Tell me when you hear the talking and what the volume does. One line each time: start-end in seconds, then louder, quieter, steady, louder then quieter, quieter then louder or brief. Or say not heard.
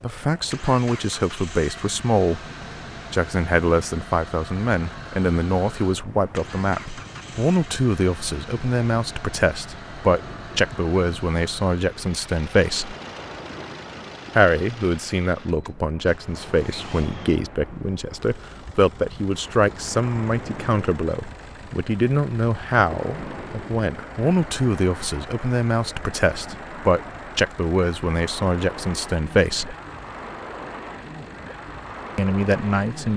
0.0-2.5 brief
3.1-12.9 steady
14.3-29.8 steady
32.1-33.1 brief.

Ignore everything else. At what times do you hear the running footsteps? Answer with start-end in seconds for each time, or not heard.
not heard.